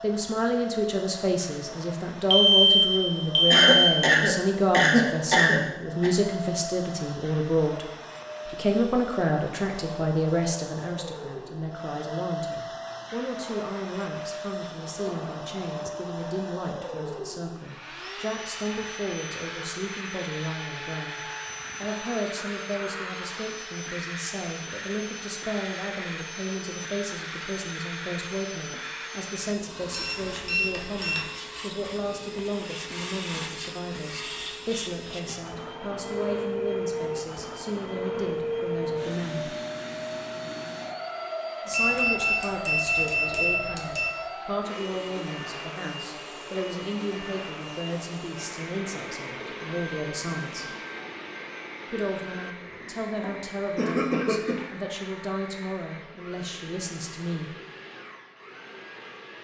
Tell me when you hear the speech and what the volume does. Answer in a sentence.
You can hear the speech from 0.0 to 39.5 s, getting quieter; from 41.6 to 50.8 s, at a steady volume; and from 51.9 to 57.5 s, at a steady volume.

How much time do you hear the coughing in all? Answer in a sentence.
The coughing can be heard for 4 seconds in total.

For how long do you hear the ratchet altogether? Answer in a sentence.
The ratchet can't be heard in this clip.